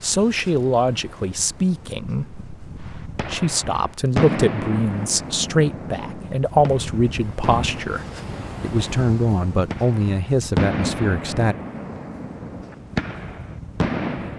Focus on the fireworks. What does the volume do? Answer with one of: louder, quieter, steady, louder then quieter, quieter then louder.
quieter then louder.